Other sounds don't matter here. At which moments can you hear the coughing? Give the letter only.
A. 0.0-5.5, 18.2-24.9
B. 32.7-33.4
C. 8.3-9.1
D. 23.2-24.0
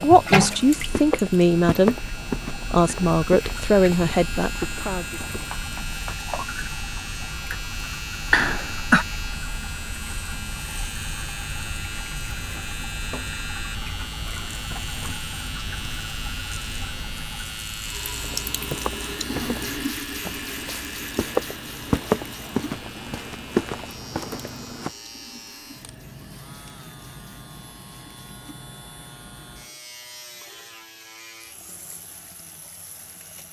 C.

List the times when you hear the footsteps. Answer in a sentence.
The footsteps can be heard from 0.0 to 5.5 s and from 18.2 to 24.9 s.